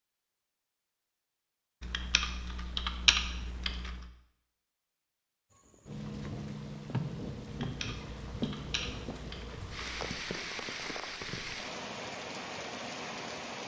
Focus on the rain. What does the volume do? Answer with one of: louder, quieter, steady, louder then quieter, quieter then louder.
steady.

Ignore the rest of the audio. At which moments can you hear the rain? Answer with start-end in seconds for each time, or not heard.
5.5-13.6.